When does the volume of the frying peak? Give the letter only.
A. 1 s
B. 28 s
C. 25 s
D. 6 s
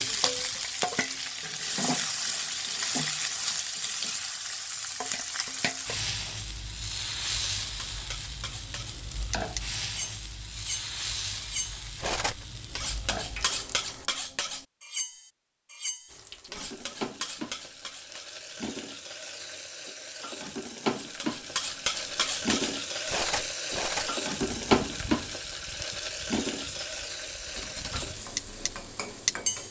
C.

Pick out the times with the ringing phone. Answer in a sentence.
The ringing phone can't be heard in this clip.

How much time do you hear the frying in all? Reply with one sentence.
The frying can be heard for 28 seconds in total.